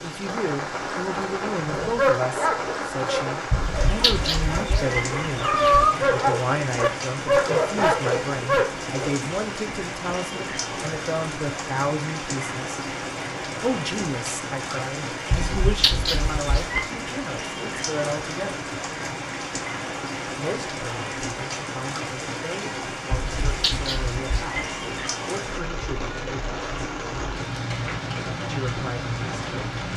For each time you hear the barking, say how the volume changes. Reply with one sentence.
The barking can be heard from 1.6 to 9.2 s, getting quieter then louder.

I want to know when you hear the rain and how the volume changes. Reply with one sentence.
The rain can be heard from 0.0 to 29.9 s, at a steady volume.